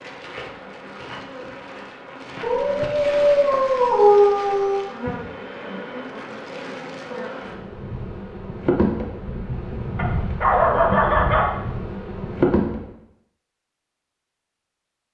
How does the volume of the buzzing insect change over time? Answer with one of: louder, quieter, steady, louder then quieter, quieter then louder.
louder.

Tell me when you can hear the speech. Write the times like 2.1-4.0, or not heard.
not heard.